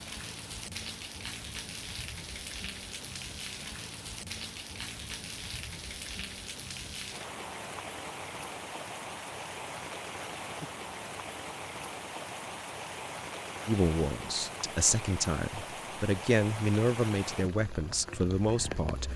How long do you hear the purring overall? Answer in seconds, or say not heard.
not heard.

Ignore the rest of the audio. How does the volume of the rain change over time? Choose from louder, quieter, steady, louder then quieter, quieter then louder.
steady.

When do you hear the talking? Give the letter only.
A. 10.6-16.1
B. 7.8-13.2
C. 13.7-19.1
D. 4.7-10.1
C.